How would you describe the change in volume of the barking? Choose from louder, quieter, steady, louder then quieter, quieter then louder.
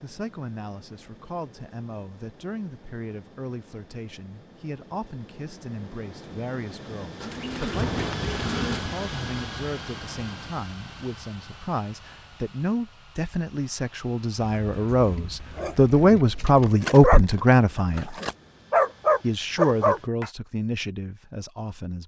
louder.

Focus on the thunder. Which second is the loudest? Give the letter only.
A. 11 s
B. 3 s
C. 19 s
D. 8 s
D.